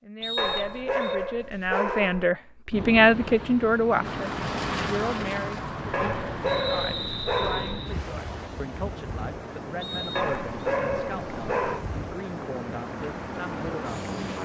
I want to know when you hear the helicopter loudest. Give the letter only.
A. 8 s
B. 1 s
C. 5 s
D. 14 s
C.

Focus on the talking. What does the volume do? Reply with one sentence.
The loudness of the talking goes up, then down.